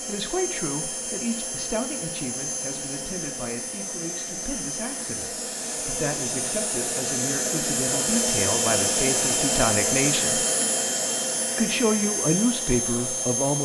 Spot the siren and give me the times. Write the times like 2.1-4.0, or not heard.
not heard.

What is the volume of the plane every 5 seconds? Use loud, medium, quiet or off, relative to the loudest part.
medium, loud, loud.